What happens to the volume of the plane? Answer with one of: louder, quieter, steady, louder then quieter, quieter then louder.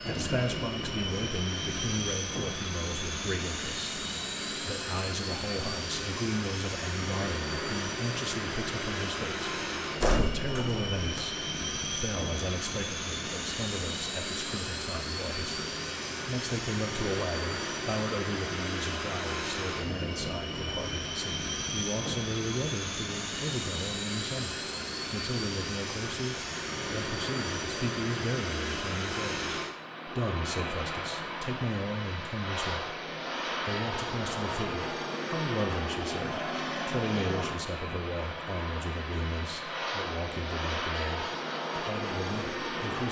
steady.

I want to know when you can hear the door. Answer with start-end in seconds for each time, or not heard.
10.0-11.2.